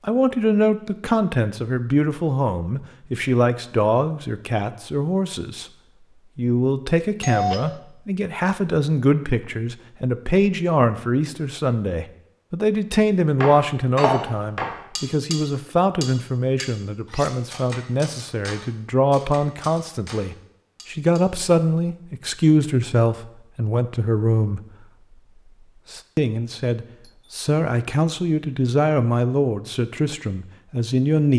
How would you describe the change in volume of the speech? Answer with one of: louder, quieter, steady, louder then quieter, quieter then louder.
steady.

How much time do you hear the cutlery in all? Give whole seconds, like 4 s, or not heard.
8 s.